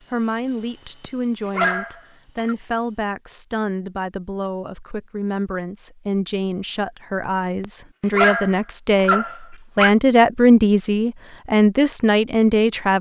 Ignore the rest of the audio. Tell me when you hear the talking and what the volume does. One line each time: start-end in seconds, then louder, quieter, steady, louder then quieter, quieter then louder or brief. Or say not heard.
0.1-12.9 louder.